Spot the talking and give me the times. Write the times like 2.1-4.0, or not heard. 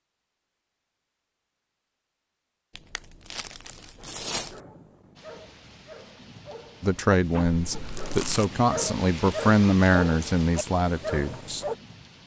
6.8-11.7.